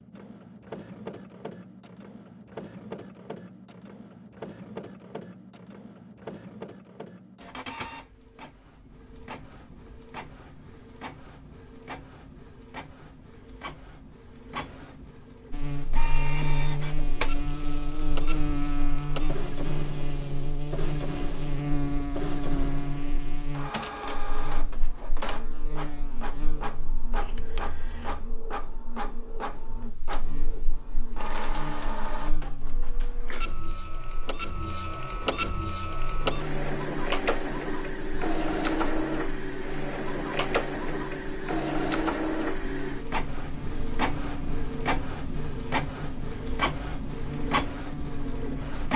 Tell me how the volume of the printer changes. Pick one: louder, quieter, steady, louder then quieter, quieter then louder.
louder.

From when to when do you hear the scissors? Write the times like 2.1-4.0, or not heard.
27.1-28.4.